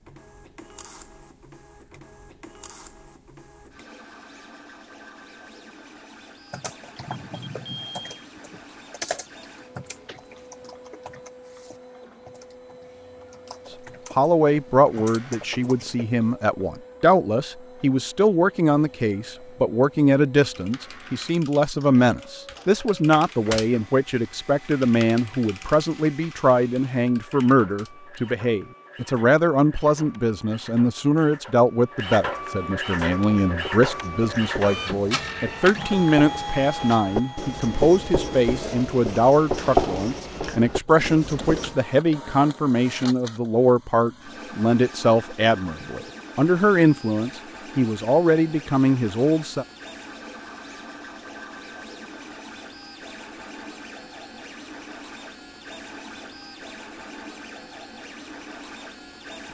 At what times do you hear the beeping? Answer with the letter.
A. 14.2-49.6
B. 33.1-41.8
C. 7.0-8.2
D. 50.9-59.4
C.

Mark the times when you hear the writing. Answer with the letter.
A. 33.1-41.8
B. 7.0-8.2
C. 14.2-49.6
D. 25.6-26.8
A.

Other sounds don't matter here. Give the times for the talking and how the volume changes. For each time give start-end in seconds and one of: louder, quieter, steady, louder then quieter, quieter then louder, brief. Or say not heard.
14.2-49.6 steady.